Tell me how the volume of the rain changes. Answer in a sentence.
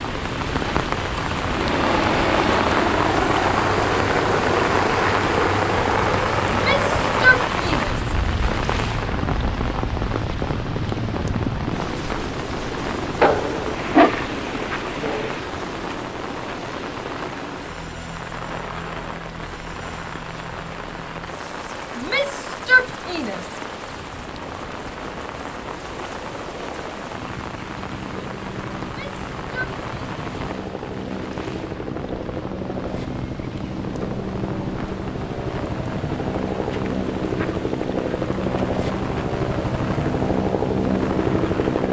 The loudness of the rain goes down.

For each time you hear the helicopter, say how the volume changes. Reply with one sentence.
The helicopter can be heard from 1.4 to 41.8 s, getting quieter then louder.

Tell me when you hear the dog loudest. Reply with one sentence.
The loudest moment of the dog is at 14 seconds.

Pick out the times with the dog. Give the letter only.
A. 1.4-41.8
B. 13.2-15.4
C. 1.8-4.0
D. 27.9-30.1
B.